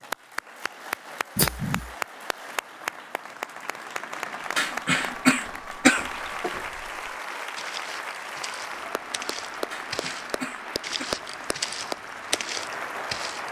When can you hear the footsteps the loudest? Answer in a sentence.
The volume of the footsteps peaks at 12 seconds.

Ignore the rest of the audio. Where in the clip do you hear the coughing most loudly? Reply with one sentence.
The loudest moment of the coughing is at 6 seconds.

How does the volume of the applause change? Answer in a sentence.
The volume of the applause stays about the same.